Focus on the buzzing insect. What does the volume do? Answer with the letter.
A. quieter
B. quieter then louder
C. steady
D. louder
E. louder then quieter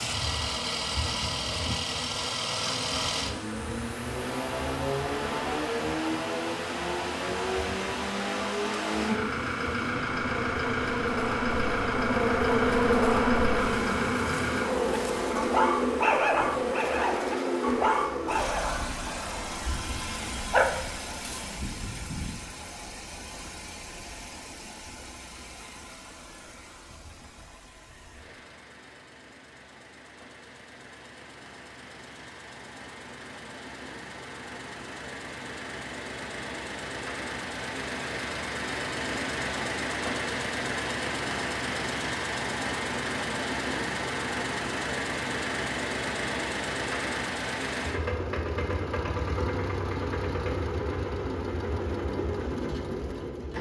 E.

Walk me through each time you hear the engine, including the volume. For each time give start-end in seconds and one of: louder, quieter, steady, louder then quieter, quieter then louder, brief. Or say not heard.
0.0-53.5 quieter then louder.